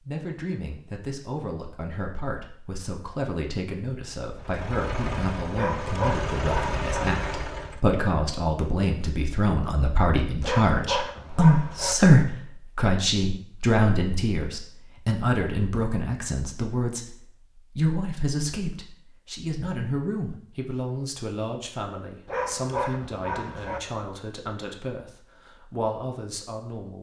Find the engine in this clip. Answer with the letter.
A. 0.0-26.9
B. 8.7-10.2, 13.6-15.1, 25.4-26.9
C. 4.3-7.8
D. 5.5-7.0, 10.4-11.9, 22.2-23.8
C.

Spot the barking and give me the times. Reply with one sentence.
You can hear the barking from 5.5 to 7.0 s, from 10.4 to 11.9 s and from 22.2 to 23.8 s.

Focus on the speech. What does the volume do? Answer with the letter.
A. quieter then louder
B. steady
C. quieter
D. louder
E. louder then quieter
E.